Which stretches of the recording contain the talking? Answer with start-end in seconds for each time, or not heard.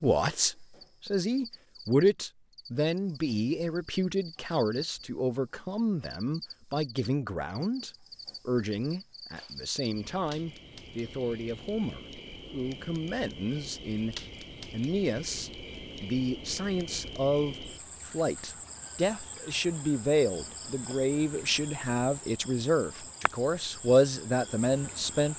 0.0-25.3.